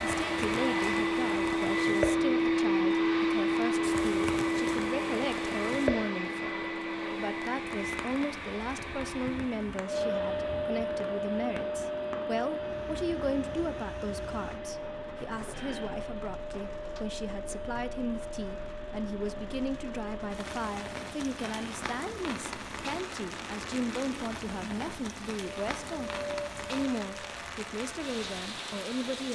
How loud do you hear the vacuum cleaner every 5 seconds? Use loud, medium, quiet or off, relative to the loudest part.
loud, medium, medium, quiet, quiet, quiet.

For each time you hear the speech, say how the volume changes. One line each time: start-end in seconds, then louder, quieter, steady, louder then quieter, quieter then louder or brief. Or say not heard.
0.0-29.2 steady.